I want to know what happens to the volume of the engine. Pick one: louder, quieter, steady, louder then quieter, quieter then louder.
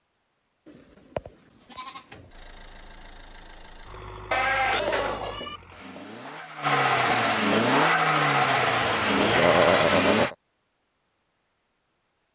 louder.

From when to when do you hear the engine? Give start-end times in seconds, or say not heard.
2.3-10.3.